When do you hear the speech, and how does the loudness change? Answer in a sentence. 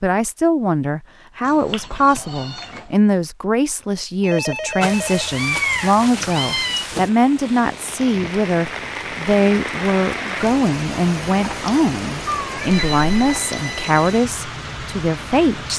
The speech can be heard from 0.0 to 15.7 s, at a steady volume.